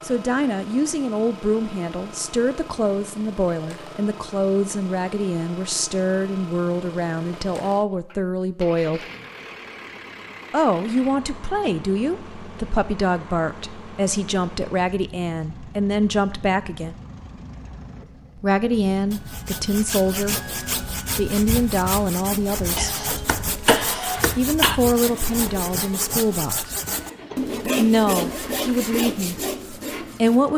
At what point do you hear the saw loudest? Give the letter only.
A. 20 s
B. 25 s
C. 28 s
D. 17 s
C.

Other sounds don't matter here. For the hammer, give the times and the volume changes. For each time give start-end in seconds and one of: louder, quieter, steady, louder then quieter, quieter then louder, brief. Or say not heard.
not heard.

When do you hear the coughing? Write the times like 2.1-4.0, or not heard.
22.8-24.8.